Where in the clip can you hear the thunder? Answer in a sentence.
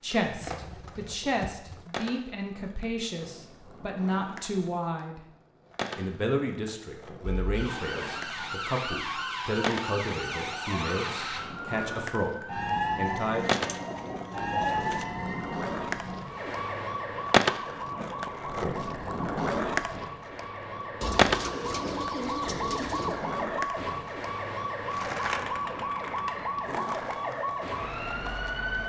You can't hear the thunder here.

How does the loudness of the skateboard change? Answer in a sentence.
The loudness of the skateboard goes up, then down.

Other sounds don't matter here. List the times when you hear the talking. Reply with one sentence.
The talking can be heard from 0.0 to 5.2 s and from 6.0 to 13.7 s.